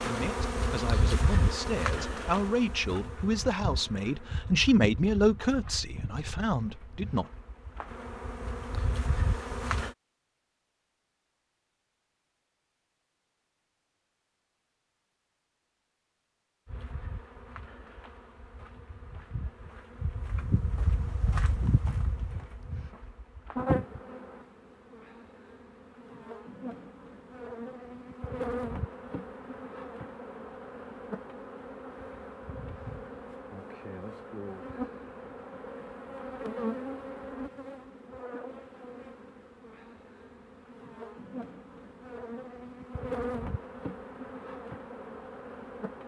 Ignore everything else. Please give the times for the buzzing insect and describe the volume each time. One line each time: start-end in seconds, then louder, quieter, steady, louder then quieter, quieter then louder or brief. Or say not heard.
0.0-9.9 quieter then louder
16.6-46.0 steady.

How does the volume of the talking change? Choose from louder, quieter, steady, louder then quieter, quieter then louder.
louder then quieter.